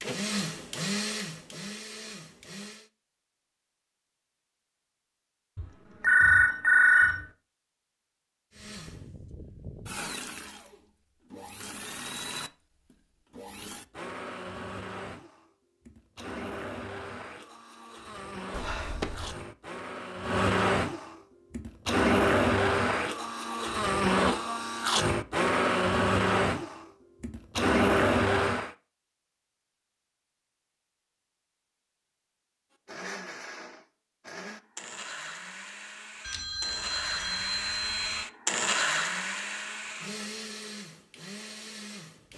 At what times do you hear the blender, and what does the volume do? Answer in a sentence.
The blender can be heard briefly from 0.0 to 2.9 s; from 8.5 to 28.8 s, getting louder; and from 32.9 to 42.3 s, getting louder then quieter.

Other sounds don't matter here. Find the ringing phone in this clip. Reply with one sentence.
The ringing phone can be heard from 5.5 to 7.2 s, from 18.5 to 19.4 s and from 36.2 to 38.2 s.